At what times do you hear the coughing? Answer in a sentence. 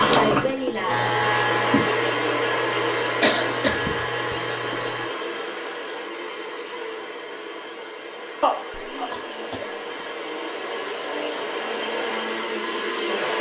The coughing can be heard from 3.2 to 4.3 s and from 8.4 to 10.1 s.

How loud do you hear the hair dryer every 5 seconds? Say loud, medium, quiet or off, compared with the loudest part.
loud, medium, loud.